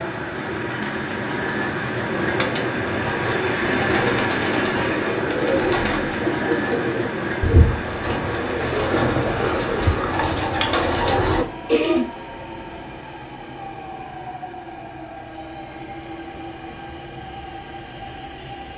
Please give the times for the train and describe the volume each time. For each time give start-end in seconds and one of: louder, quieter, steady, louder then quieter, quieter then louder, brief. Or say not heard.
0.0-18.7 quieter.